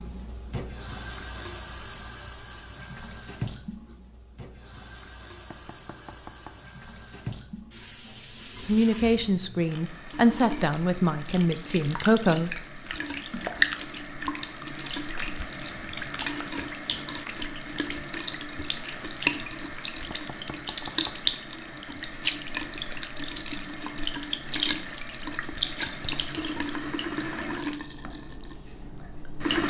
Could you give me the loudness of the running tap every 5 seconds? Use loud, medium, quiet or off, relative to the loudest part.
medium, quiet, loud, loud, loud, loud.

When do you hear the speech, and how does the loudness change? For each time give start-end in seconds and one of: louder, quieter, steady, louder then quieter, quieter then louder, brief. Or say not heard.
8.7-12.7 steady.